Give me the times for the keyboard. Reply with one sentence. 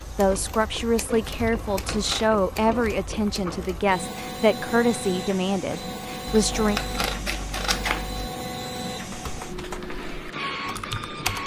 You can hear the keyboard from 9.0 to 11.4 s.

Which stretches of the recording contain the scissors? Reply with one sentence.
You can hear the scissors from 1.4 to 2.4 s and from 6.2 to 8.3 s.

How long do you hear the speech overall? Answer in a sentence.
You can hear the speech for 7 seconds altogether.